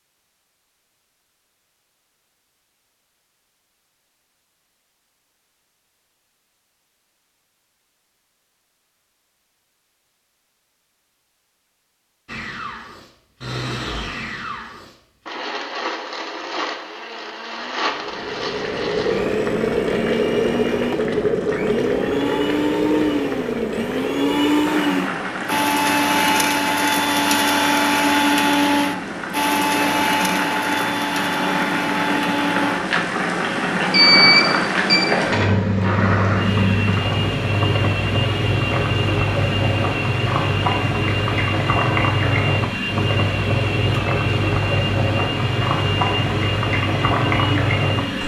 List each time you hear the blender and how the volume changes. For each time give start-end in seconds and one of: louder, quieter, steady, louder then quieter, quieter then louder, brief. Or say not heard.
12.2-48.2 louder then quieter.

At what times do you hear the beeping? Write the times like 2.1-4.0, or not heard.
33.9-35.0.